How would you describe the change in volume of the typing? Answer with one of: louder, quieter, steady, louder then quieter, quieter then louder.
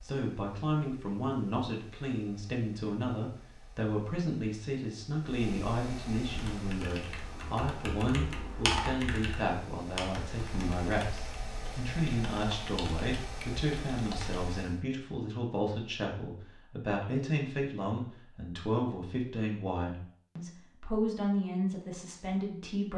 louder then quieter.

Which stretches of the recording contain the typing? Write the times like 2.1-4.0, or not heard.
6.3-14.5.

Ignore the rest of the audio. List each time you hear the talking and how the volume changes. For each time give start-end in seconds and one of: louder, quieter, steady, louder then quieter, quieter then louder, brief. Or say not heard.
0.0-22.9 steady.